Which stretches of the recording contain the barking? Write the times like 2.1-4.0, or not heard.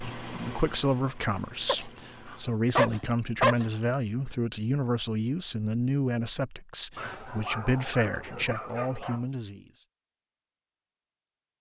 1.6-4.0, 7.0-9.2.